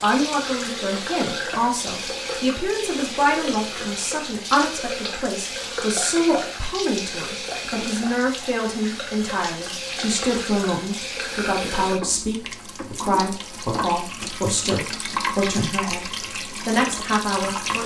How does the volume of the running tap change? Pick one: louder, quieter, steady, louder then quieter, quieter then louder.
steady.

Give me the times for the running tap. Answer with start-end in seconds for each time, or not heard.
0.0-17.8.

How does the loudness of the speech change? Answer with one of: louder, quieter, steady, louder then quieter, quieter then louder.
steady.